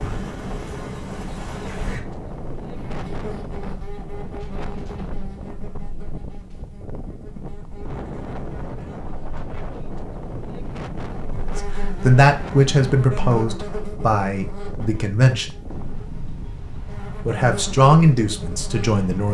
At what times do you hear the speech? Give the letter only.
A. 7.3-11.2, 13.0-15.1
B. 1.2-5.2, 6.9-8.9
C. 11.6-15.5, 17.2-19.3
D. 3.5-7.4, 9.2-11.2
C.